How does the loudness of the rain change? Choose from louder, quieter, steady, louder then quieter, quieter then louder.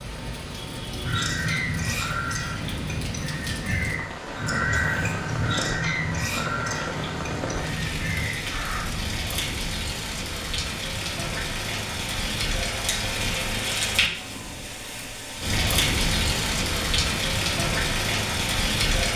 louder.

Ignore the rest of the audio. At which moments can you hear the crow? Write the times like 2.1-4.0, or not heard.
1.0-8.8.